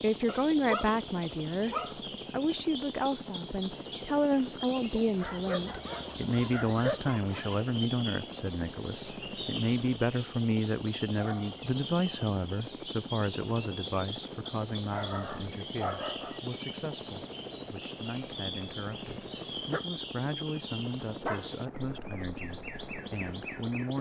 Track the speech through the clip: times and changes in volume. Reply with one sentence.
The speech can be heard from 0.0 to 23.9 s, getting quieter.